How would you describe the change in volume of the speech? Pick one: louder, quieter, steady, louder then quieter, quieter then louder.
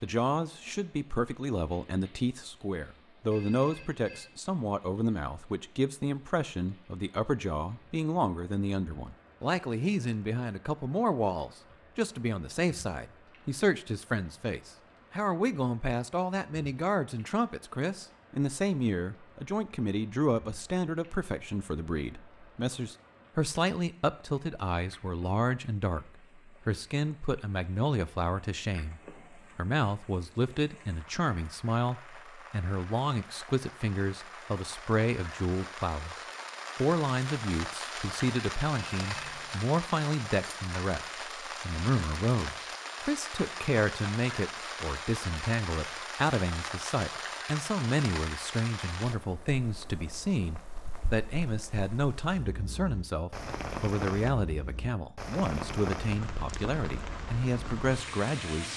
steady.